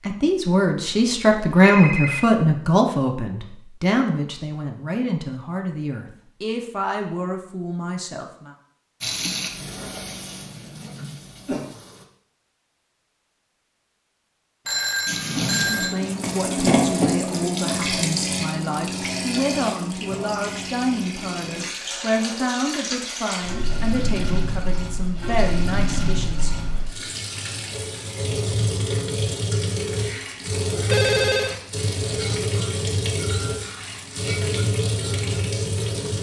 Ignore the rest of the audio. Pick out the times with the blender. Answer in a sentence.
You can't hear the blender here.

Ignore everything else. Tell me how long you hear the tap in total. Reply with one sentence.
The tap can be heard for 24 seconds in total.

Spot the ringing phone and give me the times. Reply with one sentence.
The ringing phone can be heard from 0.8 to 2.2 s, from 14.7 to 16.0 s and from 30.9 to 31.6 s.